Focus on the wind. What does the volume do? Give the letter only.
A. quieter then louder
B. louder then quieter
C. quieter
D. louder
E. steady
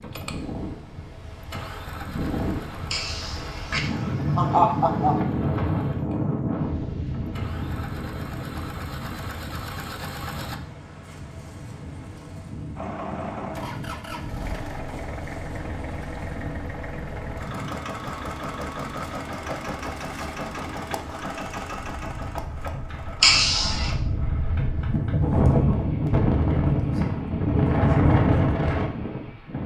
A.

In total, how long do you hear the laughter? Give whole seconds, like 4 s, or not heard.
3 s.